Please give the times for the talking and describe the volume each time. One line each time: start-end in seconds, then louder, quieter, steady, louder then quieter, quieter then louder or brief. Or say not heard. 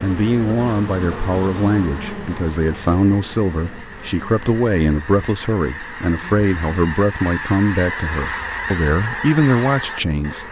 0.0-10.4 steady.